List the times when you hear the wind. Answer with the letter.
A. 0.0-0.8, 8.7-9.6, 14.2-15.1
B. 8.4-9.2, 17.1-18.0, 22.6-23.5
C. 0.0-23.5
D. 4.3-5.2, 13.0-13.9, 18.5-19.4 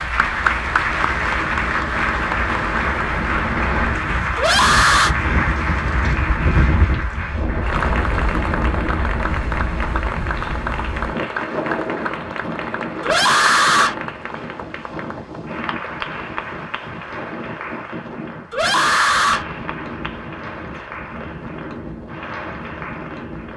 C.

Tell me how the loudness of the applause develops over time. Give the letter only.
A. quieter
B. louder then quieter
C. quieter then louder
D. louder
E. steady
A.